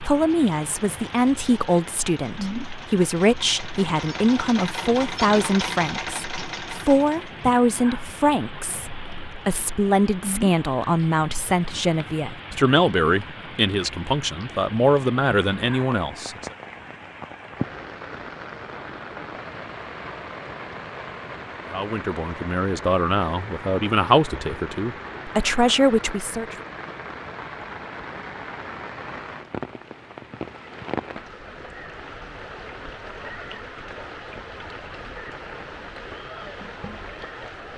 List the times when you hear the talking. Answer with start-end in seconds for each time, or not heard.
0.0-16.6, 21.7-26.6.